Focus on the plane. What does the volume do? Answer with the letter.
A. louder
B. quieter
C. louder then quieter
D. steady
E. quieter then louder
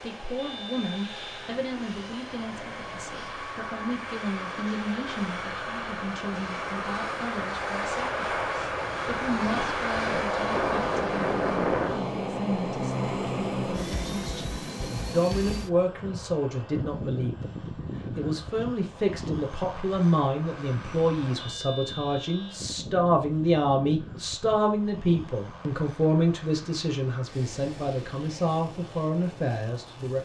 C.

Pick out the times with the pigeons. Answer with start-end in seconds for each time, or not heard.
not heard.